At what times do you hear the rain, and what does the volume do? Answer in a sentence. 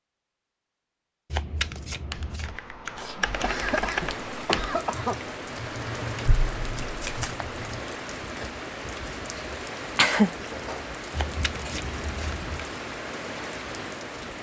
You can hear the rain from 3.3 to 14.3 s, at a steady volume.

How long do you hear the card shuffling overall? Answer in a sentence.
You can hear the card shuffling for 4 seconds altogether.